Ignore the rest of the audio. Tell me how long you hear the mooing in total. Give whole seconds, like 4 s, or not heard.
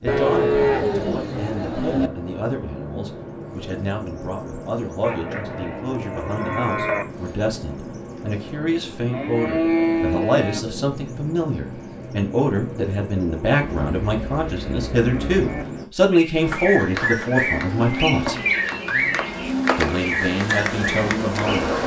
10 s.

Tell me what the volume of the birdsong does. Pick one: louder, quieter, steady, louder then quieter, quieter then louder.
louder.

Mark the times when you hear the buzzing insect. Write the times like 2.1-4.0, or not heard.
16.4-21.8.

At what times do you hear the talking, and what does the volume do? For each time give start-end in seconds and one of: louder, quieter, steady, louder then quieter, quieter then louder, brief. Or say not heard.
0.0-18.4 louder
19.8-21.7 brief.